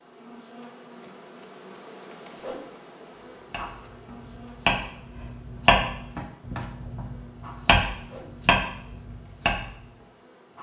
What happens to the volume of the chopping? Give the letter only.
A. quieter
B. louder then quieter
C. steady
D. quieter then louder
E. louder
D.